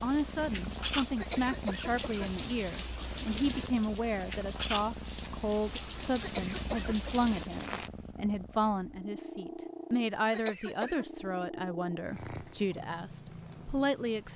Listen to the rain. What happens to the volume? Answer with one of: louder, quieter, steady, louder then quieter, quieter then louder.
steady.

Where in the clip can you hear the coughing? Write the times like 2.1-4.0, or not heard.
1.1-2.5, 6.2-7.2, 10.3-11.1.